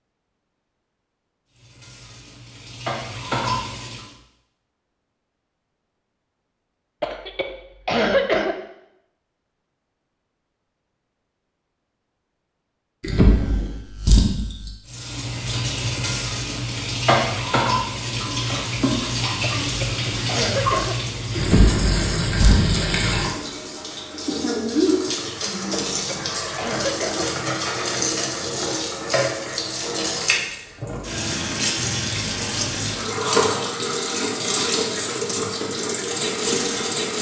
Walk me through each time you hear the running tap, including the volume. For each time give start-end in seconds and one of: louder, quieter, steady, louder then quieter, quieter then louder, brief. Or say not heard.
1.5-4.1 brief
14.8-37.1 steady.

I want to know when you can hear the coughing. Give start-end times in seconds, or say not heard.
7.0-8.6, 19.4-20.9, 25.9-27.2.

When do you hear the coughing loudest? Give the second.
8 s.